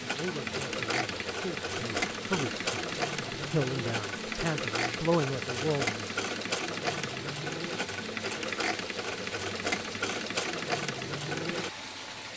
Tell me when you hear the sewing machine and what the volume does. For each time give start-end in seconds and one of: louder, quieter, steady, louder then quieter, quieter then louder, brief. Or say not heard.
0.0-12.3 steady.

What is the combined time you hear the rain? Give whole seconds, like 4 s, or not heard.
12 s.